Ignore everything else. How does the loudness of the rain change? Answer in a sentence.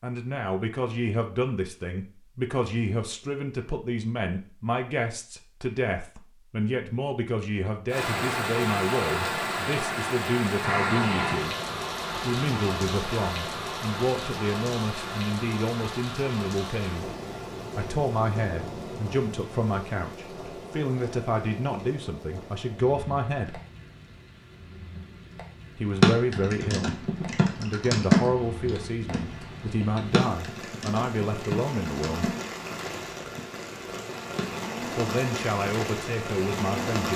The loudness of the rain goes down, then up.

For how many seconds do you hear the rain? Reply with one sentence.
You can hear the rain for 29 seconds altogether.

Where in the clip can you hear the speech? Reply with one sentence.
You can hear the speech from 0.0 to 11.6 s, from 12.2 to 17.1 s, from 17.8 to 23.6 s, from 25.8 to 32.4 s and from 35.0 to 37.1 s.